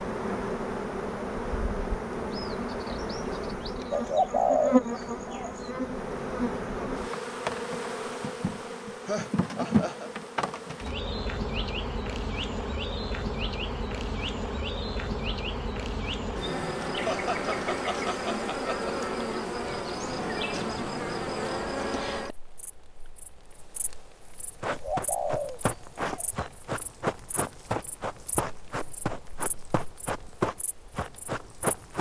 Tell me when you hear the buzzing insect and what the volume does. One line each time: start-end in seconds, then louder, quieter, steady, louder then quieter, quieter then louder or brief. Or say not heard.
0.0-31.9 quieter.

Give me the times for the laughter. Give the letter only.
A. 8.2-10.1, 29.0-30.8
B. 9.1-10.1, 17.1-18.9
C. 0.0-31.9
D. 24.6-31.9
B.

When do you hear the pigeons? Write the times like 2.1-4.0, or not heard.
3.9-5.7, 24.6-26.4.